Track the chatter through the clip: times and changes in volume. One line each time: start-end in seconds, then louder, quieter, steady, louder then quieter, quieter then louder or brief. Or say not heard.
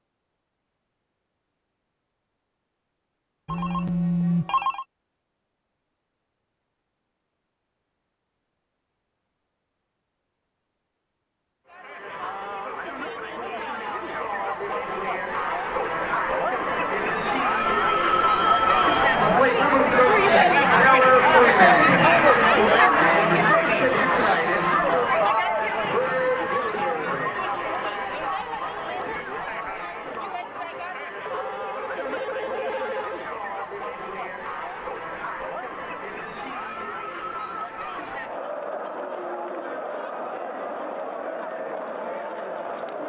11.7-43.0 louder then quieter.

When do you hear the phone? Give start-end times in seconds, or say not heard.
3.5-4.8, 17.6-19.4, 31.2-33.2.